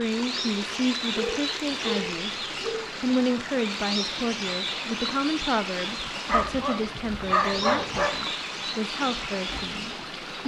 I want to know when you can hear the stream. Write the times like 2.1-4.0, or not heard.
0.0-10.4.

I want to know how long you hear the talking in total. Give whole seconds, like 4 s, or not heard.
10 s.